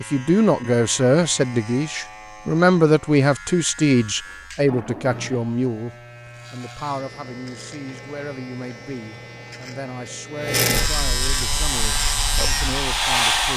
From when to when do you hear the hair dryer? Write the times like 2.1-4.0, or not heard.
11.4-13.5.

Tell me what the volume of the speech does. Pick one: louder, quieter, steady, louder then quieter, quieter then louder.
quieter.